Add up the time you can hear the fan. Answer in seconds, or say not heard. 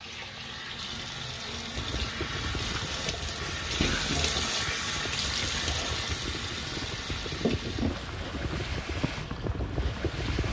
9 s.